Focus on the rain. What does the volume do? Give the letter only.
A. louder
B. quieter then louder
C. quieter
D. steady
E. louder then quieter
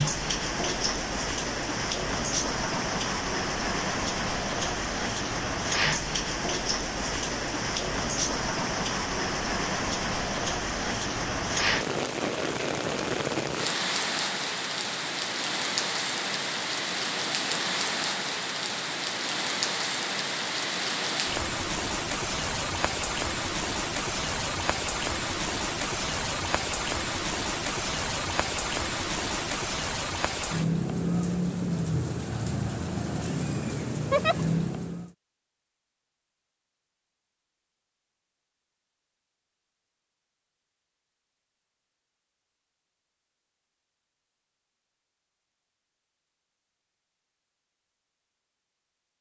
D.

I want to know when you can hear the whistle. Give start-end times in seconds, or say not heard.
not heard.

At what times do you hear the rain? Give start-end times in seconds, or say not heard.
0.0-35.1.